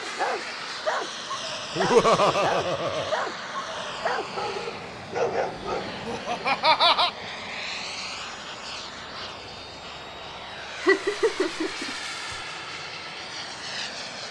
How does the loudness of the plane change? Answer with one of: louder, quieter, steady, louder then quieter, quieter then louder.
steady.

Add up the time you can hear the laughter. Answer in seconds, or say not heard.
4 s.